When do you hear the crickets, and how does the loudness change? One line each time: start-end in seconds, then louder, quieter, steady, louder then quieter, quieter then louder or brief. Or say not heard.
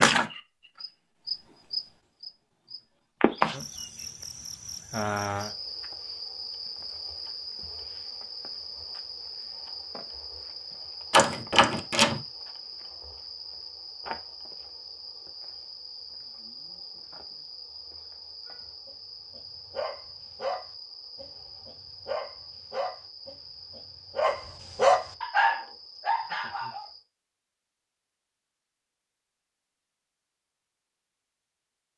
0.0-27.1 quieter.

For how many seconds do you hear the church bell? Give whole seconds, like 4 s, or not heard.
not heard.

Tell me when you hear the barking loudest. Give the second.
25 s.